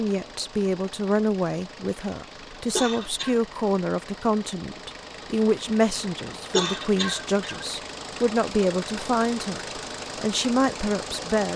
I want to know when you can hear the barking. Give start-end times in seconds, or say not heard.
not heard.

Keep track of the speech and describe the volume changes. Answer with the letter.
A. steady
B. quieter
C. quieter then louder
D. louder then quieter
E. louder
A.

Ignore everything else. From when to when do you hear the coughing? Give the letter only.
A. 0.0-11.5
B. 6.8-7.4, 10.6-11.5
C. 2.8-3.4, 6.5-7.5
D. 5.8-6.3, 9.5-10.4
C.